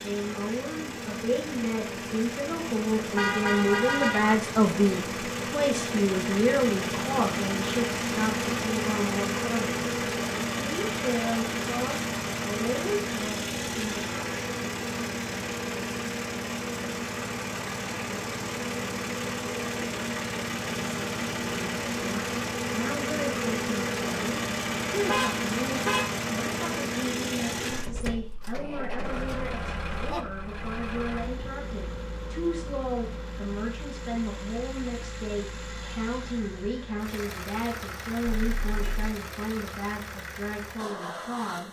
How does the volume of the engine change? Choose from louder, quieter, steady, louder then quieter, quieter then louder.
quieter.